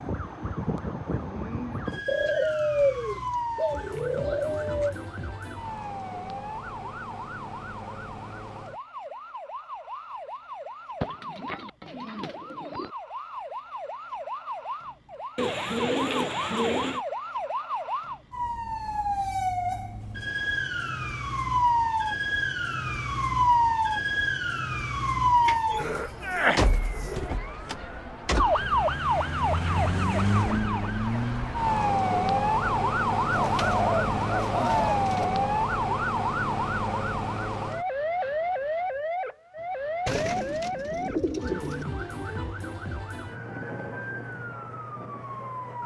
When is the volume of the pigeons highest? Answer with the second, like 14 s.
3 s.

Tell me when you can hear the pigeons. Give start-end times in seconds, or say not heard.
2.0-5.0, 11.0-12.9, 15.3-17.1, 25.4-27.3, 33.3-35.2, 40.0-41.9.